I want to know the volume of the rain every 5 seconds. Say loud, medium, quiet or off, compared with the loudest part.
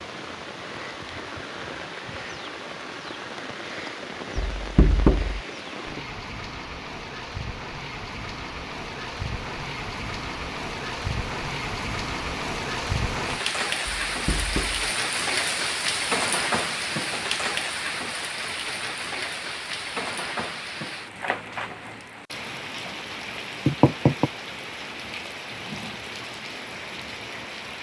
medium, medium, loud, loud, medium, medium.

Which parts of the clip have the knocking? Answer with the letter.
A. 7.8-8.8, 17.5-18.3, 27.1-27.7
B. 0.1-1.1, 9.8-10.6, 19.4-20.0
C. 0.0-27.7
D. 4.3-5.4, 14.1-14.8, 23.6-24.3
D.